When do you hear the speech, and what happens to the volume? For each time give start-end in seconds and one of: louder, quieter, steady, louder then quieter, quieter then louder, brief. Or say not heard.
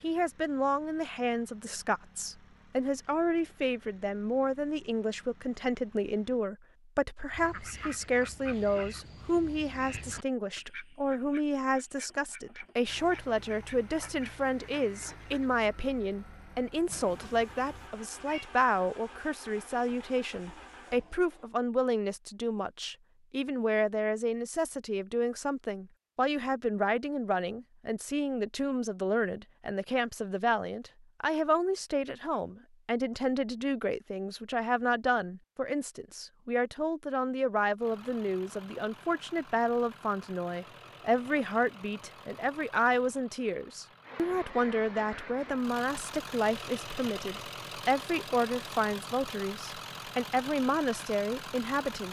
0.0-52.0 steady.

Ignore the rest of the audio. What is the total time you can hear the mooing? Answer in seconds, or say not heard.
not heard.